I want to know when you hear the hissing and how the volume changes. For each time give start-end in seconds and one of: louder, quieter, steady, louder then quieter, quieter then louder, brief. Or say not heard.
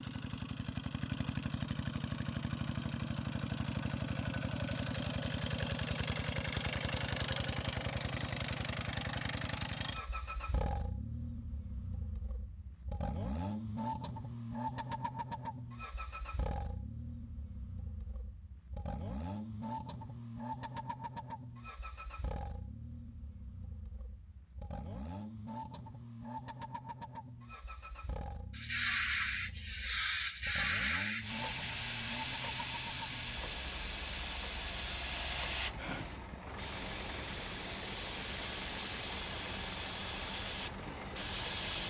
28.5-41.8 steady.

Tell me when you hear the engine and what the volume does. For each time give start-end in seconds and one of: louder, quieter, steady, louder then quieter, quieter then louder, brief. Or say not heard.
0.0-41.8 quieter.